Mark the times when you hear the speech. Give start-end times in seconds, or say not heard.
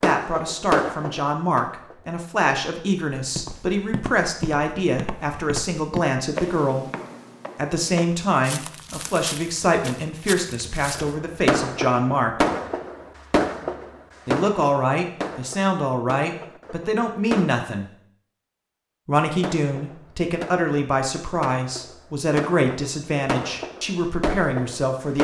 0.0-6.9, 7.5-12.4, 14.2-17.9, 19.1-25.2.